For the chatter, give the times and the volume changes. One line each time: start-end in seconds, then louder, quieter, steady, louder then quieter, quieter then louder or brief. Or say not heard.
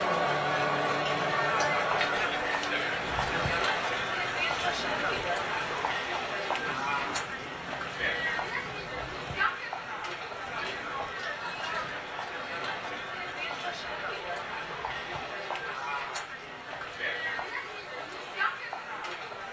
0.0-19.4 quieter.